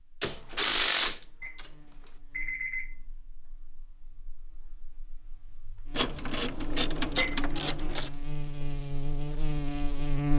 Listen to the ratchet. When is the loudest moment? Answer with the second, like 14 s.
1 s.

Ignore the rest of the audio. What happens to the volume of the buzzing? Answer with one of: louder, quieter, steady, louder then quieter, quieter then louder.
quieter then louder.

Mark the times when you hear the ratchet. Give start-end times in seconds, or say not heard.
0.2-1.6, 6.0-8.1.